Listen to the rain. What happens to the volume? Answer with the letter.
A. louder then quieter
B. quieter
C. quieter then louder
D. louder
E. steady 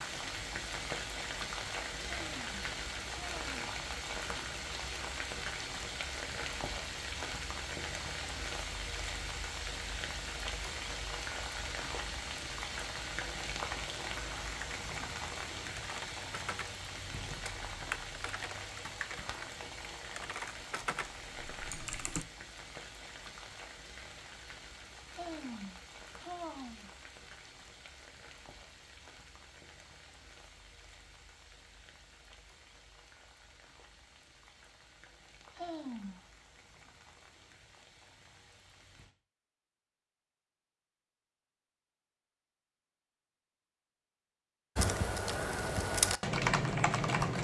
B.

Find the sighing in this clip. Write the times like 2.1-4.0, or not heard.
2.2-3.6, 25.1-26.9, 35.5-36.2.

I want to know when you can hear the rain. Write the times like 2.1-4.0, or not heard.
0.0-39.1.